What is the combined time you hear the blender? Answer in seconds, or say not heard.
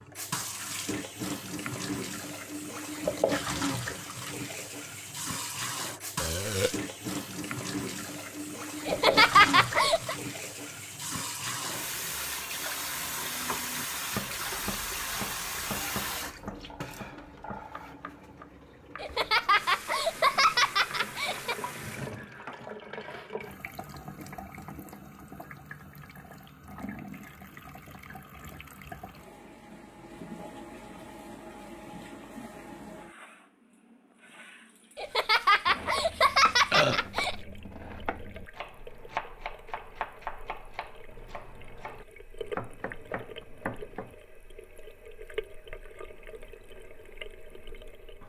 not heard.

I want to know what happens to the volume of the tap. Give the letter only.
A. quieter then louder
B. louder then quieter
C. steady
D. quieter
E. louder
D.